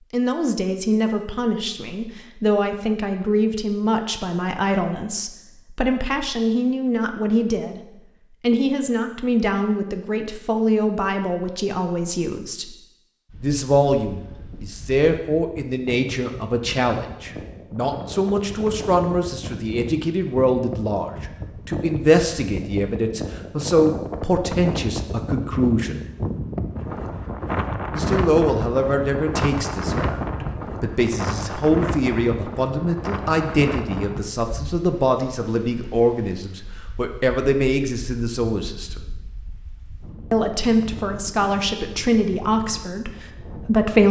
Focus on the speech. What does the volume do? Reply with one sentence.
The loudness of the speech stays about the same.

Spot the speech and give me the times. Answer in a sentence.
You can hear the speech from 0.1 to 7.8 s, from 8.4 to 12.8 s, from 13.4 to 26.1 s, from 27.9 to 39.0 s and from 40.3 to 44.0 s.